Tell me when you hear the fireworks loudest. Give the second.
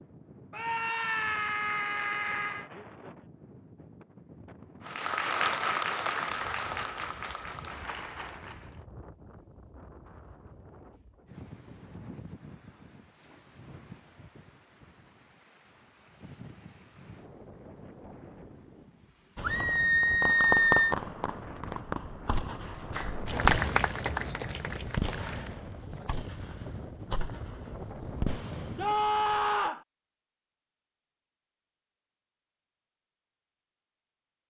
21 s.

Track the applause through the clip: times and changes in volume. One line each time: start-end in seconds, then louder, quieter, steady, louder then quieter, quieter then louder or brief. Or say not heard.
4.8-8.8 quieter
22.6-25.6 brief.